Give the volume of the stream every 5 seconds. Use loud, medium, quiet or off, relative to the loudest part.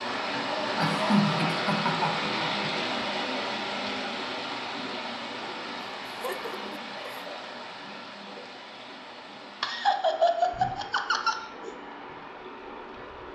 loud, medium, quiet.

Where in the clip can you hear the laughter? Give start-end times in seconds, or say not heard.
0.8-2.7, 6.0-7.2, 9.6-11.8.